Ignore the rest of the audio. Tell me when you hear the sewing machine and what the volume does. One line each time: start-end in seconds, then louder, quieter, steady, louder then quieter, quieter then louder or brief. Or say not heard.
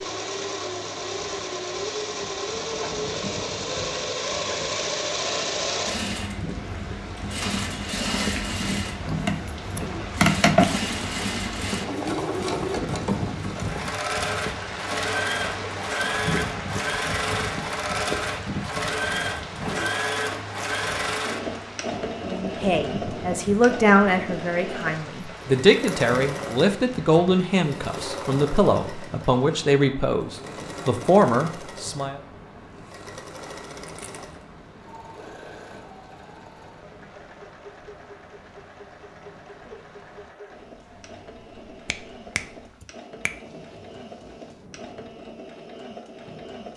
0.0-46.7 quieter.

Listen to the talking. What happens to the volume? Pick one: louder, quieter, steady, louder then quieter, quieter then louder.
steady.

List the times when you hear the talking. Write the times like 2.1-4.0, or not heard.
22.2-32.2.